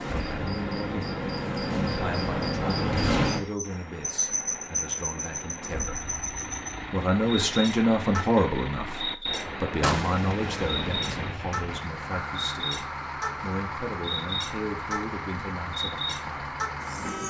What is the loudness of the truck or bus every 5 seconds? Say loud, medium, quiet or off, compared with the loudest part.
medium, loud, loud, loud.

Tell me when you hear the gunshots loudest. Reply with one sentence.
The volume of the gunshots peaks at 10 seconds.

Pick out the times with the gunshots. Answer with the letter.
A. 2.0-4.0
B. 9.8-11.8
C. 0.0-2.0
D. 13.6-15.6
B.